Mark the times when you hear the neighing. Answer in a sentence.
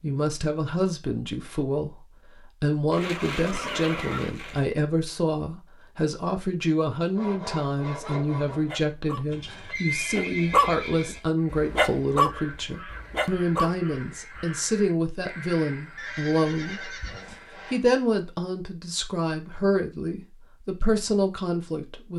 The neighing can be heard from 2.9 to 4.7 s, from 9.3 to 11.2 s and from 15.9 to 17.3 s.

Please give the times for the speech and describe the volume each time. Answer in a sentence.
The speech can be heard briefly from 0.0 to 2.0 s; and from 2.6 to 22.1 s, at a steady volume.